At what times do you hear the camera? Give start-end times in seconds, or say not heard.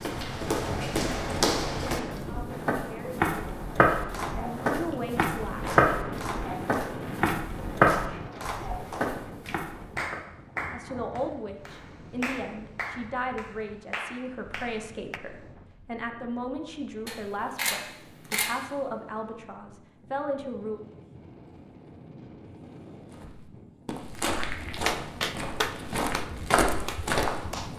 17.1-18.6.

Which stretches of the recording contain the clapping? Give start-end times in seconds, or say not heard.
4.1-15.2, 24.9-27.7.